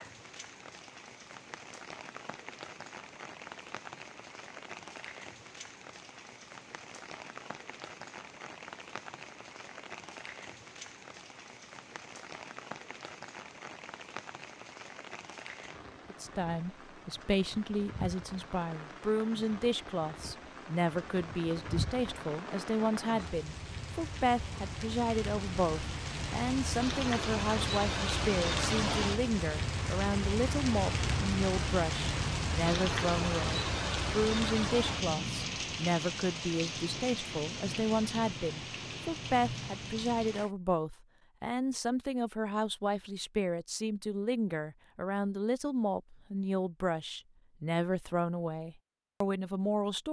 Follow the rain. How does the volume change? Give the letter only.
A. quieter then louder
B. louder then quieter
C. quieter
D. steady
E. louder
E.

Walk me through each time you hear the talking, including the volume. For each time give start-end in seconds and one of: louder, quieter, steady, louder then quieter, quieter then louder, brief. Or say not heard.
16.1-50.0 steady.